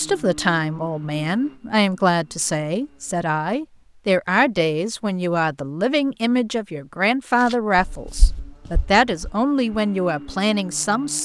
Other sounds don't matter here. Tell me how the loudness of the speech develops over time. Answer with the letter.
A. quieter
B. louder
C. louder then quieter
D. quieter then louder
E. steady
E.